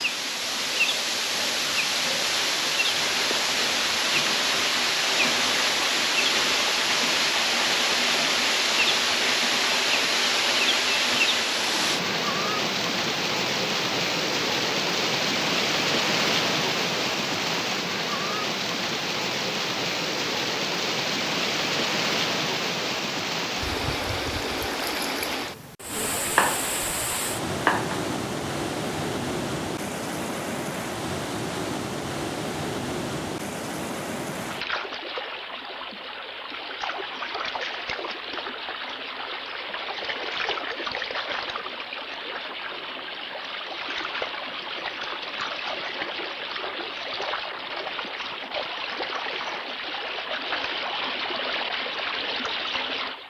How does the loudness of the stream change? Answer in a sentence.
The loudness of the stream goes down.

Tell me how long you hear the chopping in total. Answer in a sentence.
The chopping can be heard for 2 seconds in total.